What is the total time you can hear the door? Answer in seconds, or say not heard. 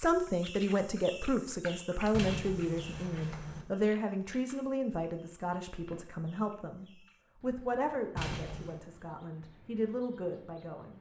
2 s.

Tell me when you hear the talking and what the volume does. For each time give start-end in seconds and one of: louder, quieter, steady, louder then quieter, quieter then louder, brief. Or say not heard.
0.0-10.9 quieter.